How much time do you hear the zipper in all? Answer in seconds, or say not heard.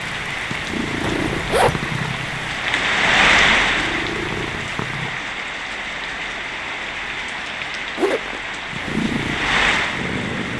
2 s.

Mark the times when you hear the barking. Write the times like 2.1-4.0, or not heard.
not heard.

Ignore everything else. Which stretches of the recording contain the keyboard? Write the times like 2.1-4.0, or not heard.
not heard.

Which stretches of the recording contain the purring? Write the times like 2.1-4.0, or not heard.
0.0-5.2, 8.7-10.5.